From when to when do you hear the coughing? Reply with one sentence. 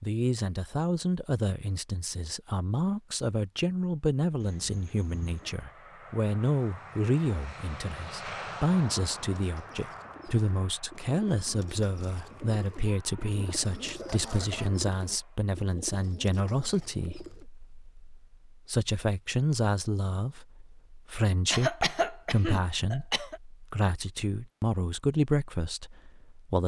The coughing can be heard from 4.4 to 5.6 s, from 12.8 to 14.7 s and from 21.5 to 23.4 s.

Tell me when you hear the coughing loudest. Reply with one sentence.
The loudest moment of the coughing is at 22 seconds.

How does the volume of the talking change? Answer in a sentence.
The loudness of the talking stays about the same.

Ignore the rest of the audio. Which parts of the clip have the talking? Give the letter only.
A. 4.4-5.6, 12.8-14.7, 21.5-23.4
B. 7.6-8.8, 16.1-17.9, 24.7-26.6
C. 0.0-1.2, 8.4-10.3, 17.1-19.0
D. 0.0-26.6
D.